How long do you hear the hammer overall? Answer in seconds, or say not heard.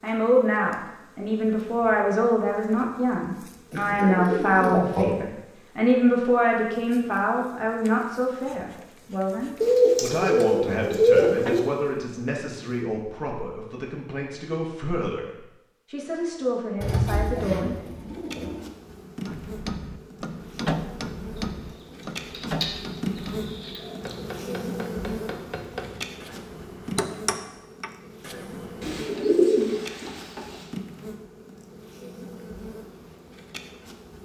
10 s.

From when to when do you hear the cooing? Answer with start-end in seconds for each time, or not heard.
3.7-5.0, 9.6-11.6, 16.8-18.6, 22.3-22.8, 23.6-24.1, 28.8-30.6.